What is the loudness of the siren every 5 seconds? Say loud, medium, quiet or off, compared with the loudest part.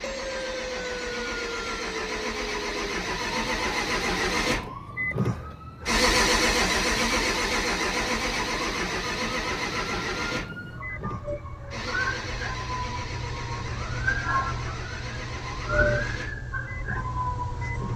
medium, medium, loud, loud.